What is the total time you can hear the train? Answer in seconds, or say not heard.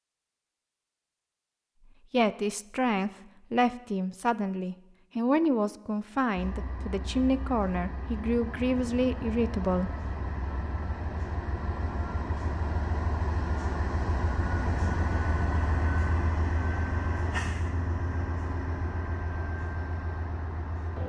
15 s.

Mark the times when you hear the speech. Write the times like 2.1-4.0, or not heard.
2.1-10.0.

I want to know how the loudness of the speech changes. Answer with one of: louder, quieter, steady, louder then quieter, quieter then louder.
steady.